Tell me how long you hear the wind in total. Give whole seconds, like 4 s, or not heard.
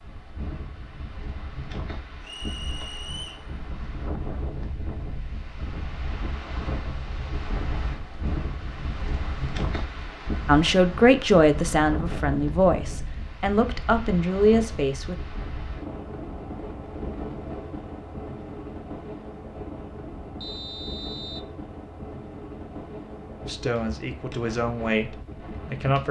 26 s.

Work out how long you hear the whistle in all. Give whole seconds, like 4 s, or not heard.
2 s.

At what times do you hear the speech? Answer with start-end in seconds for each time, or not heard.
10.4-15.2, 23.4-26.0.